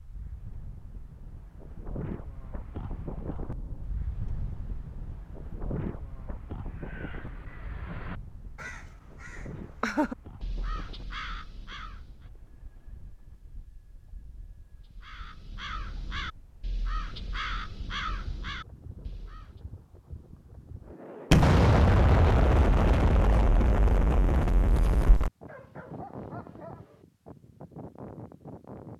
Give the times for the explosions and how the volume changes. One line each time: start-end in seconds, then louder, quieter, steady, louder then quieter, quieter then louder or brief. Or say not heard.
21.3-25.3 quieter.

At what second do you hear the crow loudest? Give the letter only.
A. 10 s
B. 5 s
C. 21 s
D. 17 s
A.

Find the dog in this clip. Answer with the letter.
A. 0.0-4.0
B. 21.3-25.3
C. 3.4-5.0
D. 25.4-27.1
D.